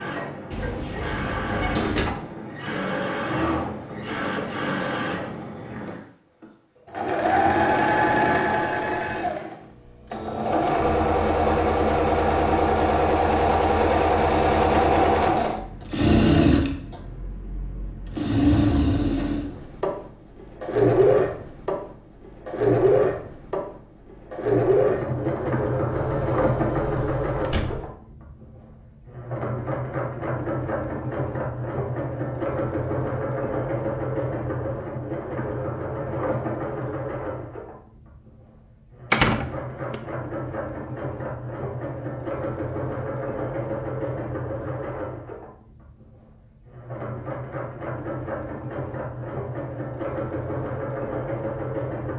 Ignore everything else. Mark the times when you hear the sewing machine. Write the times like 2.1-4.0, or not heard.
0.0-52.1.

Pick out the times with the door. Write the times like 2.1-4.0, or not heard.
0.5-2.1, 25.9-27.9, 39.1-40.0.